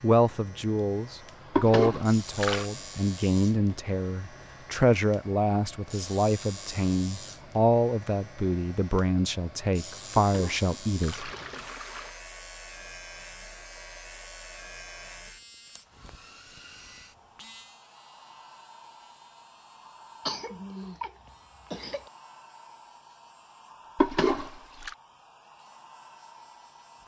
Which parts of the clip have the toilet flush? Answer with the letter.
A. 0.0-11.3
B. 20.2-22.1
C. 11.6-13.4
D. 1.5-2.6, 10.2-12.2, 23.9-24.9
D.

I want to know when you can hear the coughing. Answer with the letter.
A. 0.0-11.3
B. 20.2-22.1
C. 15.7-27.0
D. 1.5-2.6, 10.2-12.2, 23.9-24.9
B.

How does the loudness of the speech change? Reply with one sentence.
The volume of the speech stays about the same.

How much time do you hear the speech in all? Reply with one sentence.
You can hear the speech for 11 seconds altogether.